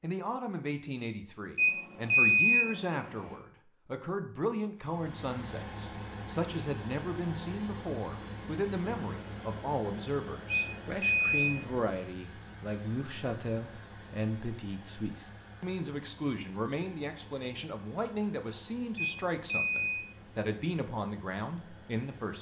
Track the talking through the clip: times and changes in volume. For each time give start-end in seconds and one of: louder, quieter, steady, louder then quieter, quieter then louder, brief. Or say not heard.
0.0-22.3 steady.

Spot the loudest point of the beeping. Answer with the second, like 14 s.
2 s.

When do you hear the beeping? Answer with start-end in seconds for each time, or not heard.
1.6-3.4, 10.5-11.6, 18.9-20.0.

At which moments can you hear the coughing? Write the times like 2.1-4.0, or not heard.
not heard.